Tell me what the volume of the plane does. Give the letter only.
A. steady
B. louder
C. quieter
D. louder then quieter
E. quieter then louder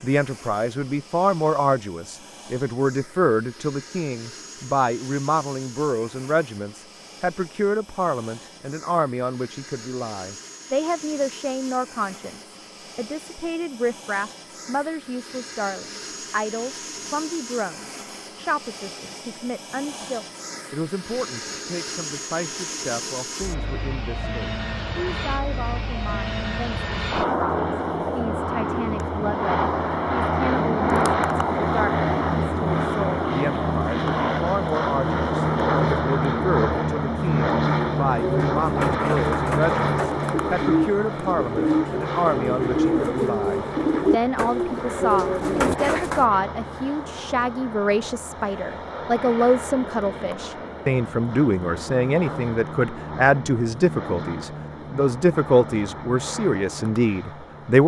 D.